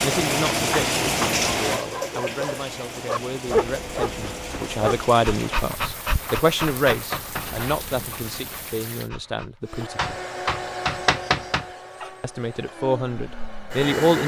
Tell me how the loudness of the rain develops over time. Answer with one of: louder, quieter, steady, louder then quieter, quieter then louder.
quieter.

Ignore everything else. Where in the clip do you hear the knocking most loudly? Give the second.
11 s.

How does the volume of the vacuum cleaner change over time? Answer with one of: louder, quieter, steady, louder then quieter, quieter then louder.
quieter.